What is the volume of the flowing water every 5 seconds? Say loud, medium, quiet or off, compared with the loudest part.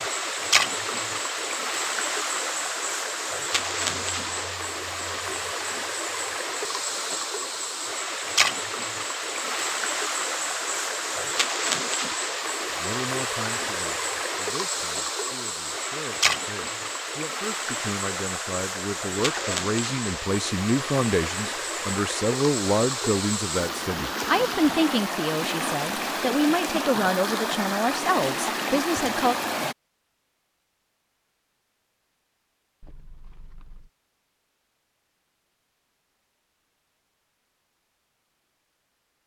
loud, loud, loud, loud, loud, loud, off, off.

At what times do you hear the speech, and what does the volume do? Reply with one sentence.
You can hear the speech from 12.7 to 29.4 s, getting louder.